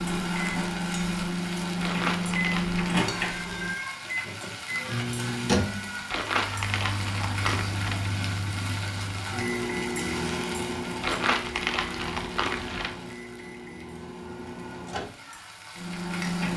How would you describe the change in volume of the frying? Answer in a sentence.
The volume of the frying goes down.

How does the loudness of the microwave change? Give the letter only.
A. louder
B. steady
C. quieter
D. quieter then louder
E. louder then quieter
C.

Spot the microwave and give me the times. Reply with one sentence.
The microwave can be heard from 0.0 to 16.5 s.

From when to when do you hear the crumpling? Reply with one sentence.
You can hear the crumpling from 1.8 to 2.9 s, from 6.1 to 8.2 s and from 11.0 to 12.9 s.